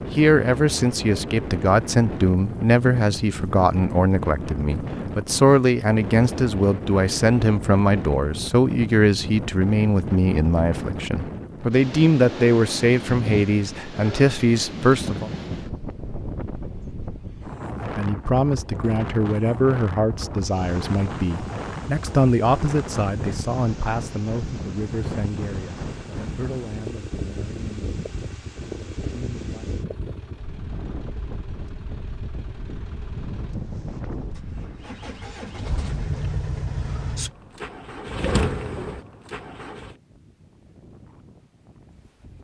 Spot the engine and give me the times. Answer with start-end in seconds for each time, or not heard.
20.4-40.0.